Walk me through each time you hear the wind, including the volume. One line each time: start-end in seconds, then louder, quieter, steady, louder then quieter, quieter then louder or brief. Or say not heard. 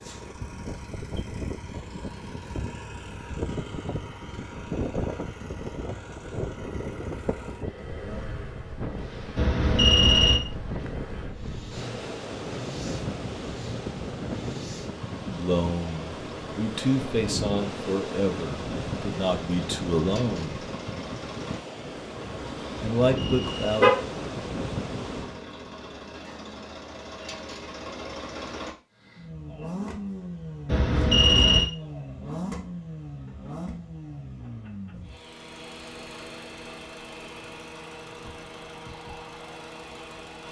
0.0-25.4 steady.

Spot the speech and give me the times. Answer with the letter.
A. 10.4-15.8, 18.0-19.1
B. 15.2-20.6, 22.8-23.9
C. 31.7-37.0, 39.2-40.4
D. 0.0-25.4
B.